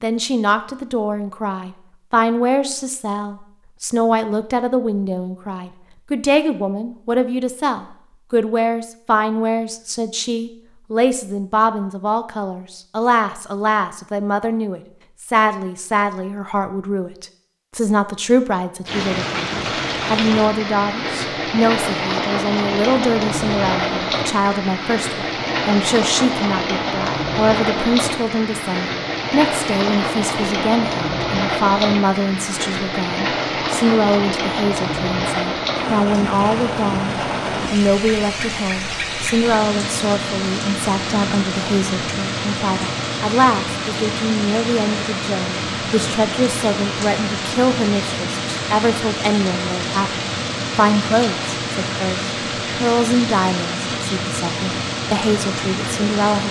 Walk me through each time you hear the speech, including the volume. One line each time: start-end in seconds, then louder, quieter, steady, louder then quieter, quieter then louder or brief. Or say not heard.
0.0-56.4 steady.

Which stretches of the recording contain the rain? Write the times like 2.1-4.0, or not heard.
18.9-56.4.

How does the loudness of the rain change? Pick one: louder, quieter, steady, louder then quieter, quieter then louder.
steady.